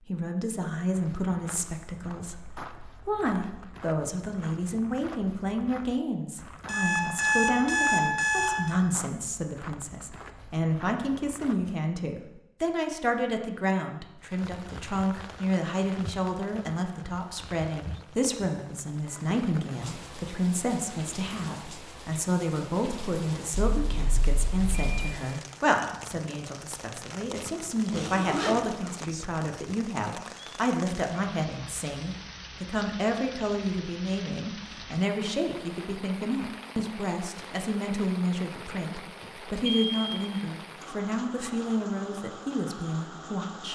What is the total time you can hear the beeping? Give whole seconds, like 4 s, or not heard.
4 s.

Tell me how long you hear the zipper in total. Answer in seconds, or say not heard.
2 s.